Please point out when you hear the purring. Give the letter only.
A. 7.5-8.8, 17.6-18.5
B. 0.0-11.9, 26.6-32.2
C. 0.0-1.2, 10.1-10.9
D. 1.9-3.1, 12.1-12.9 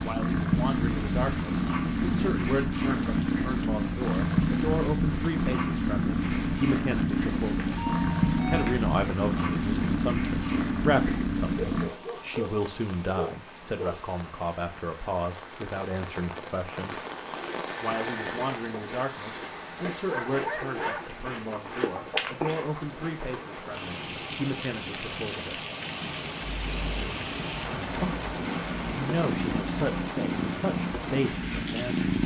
B.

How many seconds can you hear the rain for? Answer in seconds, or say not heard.
32 s.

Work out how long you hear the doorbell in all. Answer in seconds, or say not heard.
2 s.